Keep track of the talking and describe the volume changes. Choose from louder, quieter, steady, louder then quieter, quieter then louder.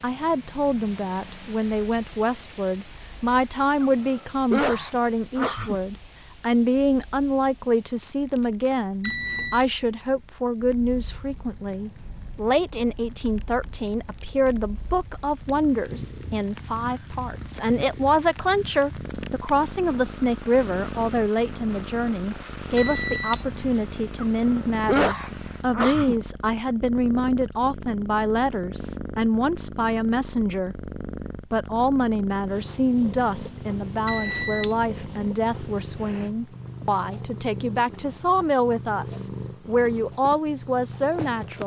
steady.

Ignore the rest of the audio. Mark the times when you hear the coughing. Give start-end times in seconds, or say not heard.
3.8-5.8, 24.4-26.1.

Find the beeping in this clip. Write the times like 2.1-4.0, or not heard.
9.0-9.7, 22.8-23.6, 34.0-35.0.